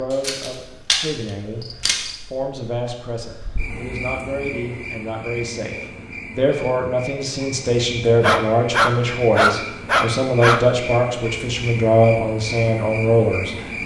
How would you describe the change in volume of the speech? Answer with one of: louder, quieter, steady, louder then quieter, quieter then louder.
louder.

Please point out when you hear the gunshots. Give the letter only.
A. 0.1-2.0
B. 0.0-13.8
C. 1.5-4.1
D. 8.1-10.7
A.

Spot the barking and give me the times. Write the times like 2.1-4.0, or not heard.
8.1-10.7.